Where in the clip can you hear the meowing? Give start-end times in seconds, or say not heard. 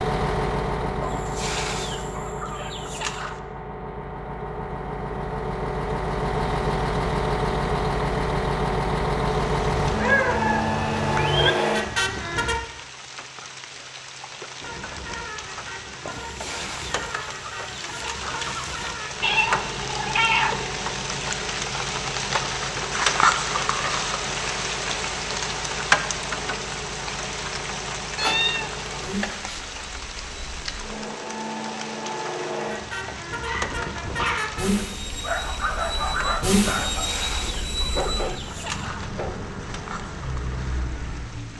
9.8-11.6, 19.2-20.6, 28.1-29.6.